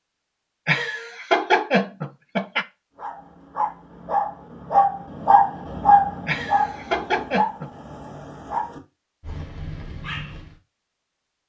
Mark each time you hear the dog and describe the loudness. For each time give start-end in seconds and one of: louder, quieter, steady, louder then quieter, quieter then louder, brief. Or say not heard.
3.0-10.6 louder then quieter.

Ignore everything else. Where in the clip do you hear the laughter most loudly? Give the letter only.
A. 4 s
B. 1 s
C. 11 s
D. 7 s
B.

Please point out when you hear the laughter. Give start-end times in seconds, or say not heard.
0.7-2.6, 6.2-7.7.